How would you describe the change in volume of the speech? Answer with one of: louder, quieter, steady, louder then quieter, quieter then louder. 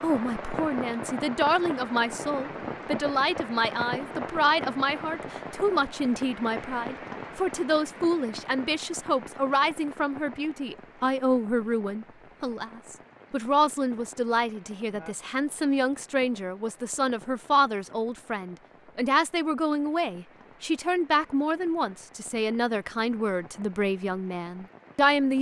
steady.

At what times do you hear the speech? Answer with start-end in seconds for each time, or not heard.
0.0-25.3.